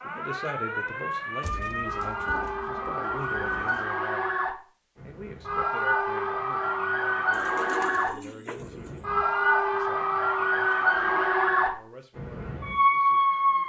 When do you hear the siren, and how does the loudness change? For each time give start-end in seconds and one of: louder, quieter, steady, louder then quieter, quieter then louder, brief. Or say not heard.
0.0-13.6 louder.